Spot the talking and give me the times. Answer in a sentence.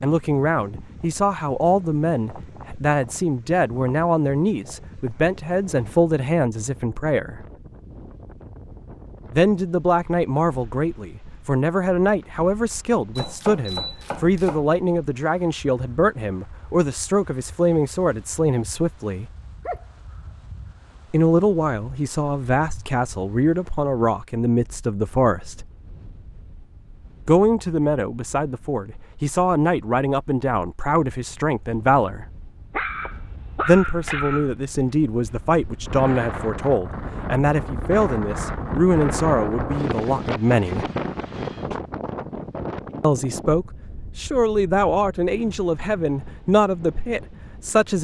You can hear the talking from 0.0 to 7.5 s, from 9.3 to 19.2 s, from 21.1 to 25.6 s, from 27.2 to 32.2 s, from 33.6 to 40.9 s and from 43.0 to 47.9 s.